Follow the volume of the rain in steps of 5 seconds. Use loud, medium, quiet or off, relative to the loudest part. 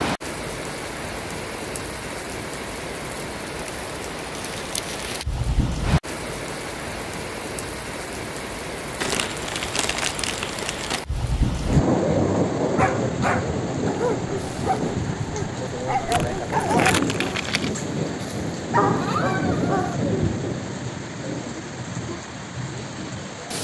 medium, medium, loud, loud, medium.